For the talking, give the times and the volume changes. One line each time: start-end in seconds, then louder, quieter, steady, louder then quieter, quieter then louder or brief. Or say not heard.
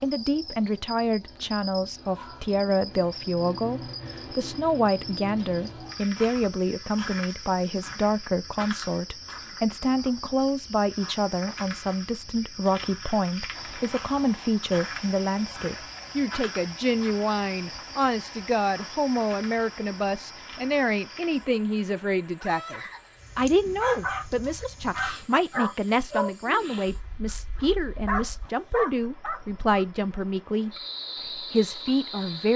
0.0-32.5 steady.